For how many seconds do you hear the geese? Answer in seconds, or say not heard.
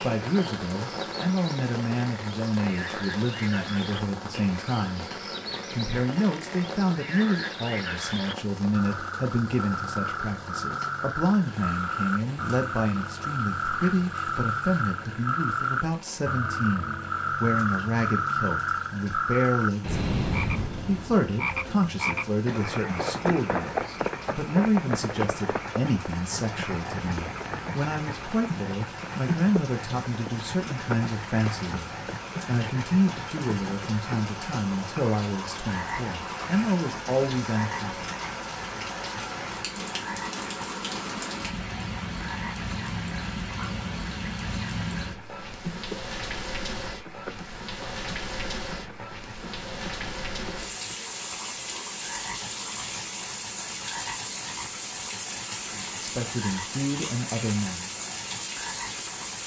not heard.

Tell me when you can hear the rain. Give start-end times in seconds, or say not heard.
0.0-59.4.